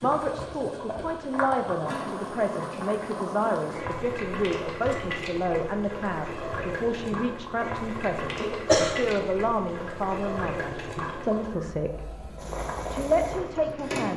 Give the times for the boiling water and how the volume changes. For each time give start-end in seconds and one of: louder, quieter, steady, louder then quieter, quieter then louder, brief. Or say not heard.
0.0-14.1 steady.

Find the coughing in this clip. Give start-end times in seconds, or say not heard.
8.4-9.2.